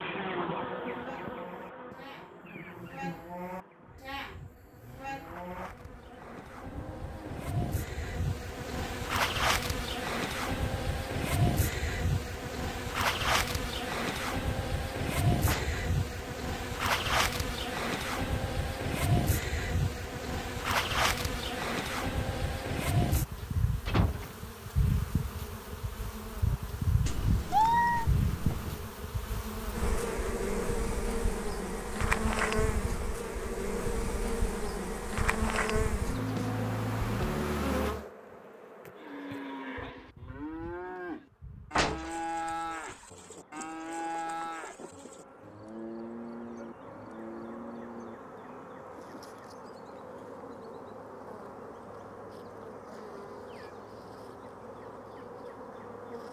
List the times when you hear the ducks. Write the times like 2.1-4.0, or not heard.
not heard.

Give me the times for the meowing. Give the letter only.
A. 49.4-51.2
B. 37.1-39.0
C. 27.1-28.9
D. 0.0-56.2
C.